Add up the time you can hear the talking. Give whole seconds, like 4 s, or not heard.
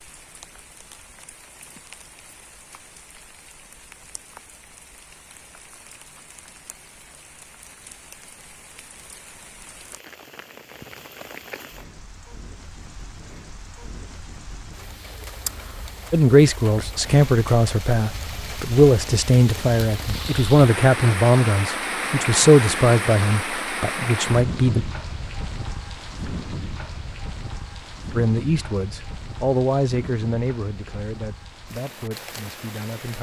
14 s.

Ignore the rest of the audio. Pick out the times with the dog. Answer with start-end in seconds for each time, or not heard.
not heard.